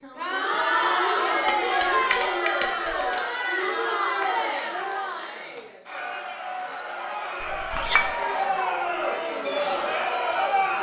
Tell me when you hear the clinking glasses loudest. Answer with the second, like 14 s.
8 s.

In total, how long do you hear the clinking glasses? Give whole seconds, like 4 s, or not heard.
3 s.